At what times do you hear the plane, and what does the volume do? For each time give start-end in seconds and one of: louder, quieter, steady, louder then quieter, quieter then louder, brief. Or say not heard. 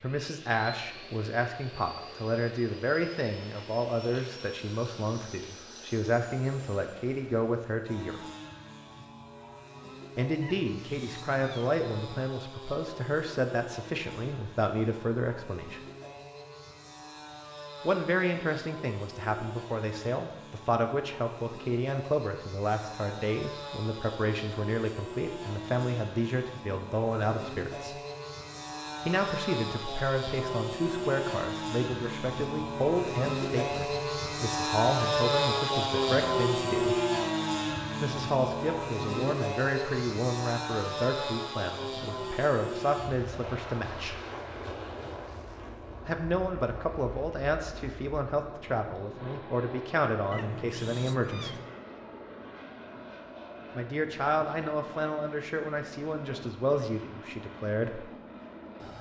0.0-58.9 louder then quieter.